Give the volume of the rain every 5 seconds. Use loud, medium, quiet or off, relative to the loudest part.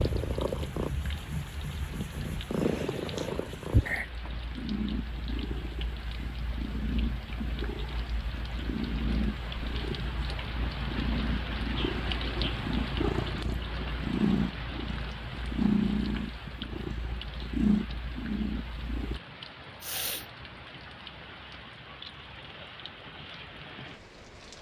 medium, medium, loud, medium, medium.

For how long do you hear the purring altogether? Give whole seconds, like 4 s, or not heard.
19 s.